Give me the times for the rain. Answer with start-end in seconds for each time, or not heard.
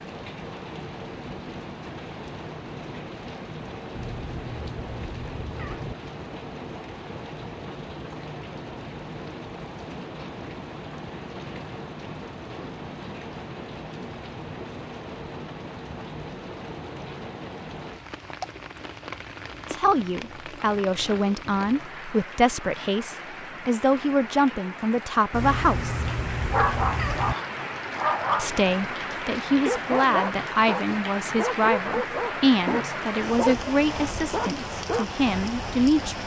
0.0-36.2.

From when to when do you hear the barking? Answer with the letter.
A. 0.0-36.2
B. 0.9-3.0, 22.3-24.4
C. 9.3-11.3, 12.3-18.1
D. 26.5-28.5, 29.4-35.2
D.